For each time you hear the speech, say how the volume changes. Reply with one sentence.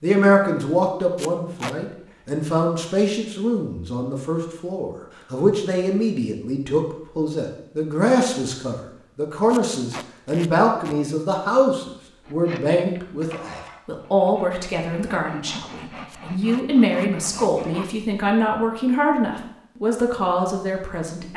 The speech can be heard from 0.0 to 21.3 s, at a steady volume.